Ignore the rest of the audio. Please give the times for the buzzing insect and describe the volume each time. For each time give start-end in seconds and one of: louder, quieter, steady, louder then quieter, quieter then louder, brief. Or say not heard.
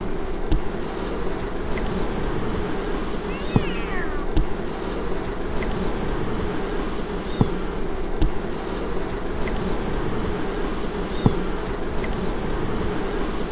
0.0-13.4 steady.